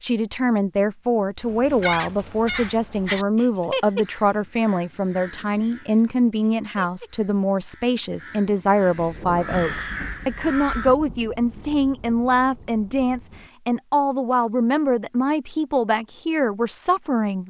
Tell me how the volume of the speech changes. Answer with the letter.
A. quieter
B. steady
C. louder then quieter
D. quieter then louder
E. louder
B.